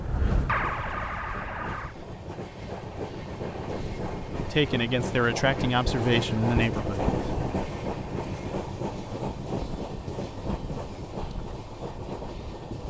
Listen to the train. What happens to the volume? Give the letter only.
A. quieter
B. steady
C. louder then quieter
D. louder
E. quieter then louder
C.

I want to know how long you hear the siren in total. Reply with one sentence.
The siren can be heard for 2 seconds in total.